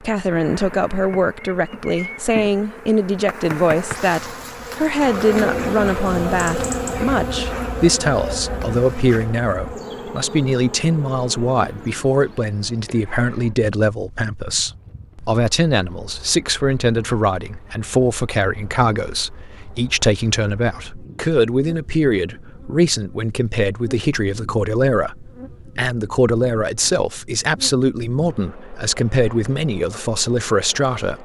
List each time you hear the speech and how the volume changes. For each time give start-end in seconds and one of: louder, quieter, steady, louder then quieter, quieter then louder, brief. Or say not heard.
0.0-31.2 steady.